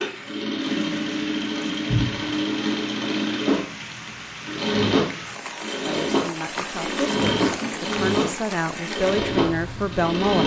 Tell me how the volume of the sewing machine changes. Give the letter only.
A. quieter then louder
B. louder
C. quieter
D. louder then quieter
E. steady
E.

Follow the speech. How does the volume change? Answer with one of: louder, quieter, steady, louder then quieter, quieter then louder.
louder.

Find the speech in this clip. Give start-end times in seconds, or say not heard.
5.8-10.4.